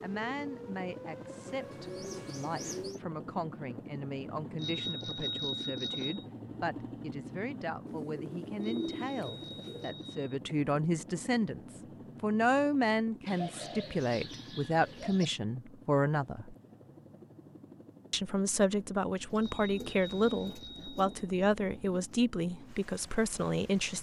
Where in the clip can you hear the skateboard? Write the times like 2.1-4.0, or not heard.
not heard.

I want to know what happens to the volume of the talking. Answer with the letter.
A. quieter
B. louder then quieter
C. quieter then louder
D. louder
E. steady
D.